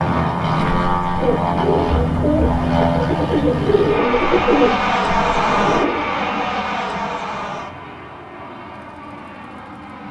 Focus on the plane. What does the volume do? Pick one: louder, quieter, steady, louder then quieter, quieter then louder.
quieter.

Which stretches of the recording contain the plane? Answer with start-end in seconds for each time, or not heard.
0.0-10.0.